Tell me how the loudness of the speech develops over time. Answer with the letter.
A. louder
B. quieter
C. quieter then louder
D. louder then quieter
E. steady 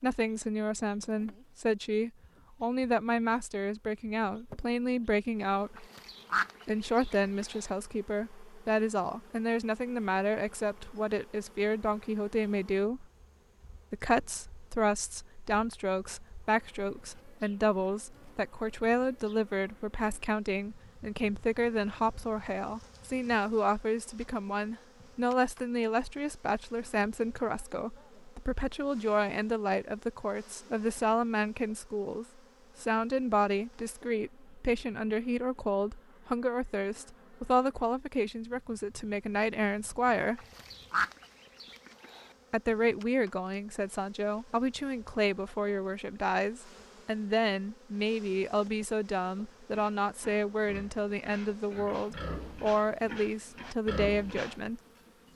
E.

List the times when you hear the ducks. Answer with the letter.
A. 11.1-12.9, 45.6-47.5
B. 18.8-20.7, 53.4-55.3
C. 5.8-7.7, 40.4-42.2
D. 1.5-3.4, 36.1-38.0
C.